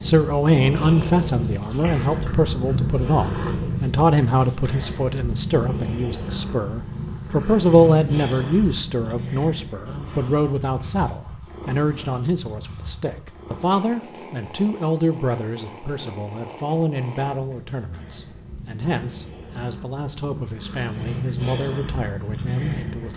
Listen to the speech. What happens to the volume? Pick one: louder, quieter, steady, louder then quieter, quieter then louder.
quieter.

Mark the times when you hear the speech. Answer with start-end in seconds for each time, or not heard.
0.0-23.1.